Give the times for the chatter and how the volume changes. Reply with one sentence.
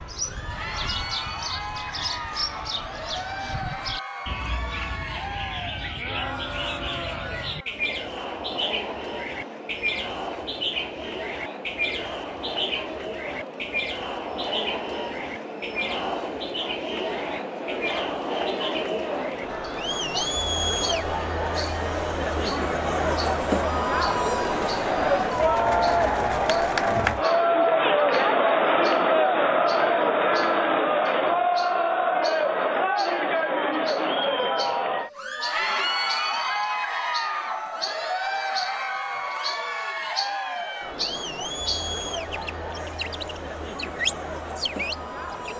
The chatter can be heard from 0.1 to 45.5 s, getting louder then quieter.